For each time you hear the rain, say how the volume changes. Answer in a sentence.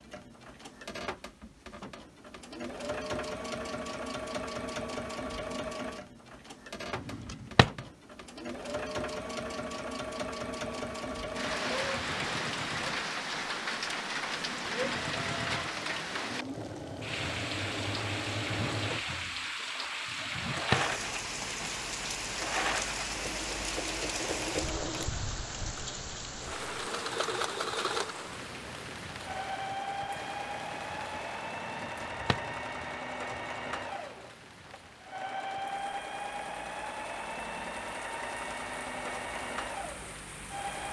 You can hear the rain from 10.7 to 40.8 s, getting quieter.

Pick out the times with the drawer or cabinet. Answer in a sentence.
The drawer or cabinet can be heard from 7.0 to 7.8 s, from 20.1 to 20.9 s and from 31.6 to 32.5 s.